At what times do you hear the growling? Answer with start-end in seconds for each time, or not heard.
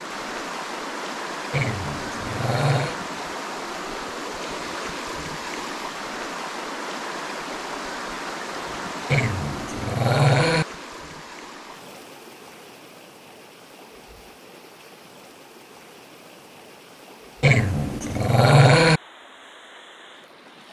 1.5-3.0, 9.1-10.7, 17.4-19.0.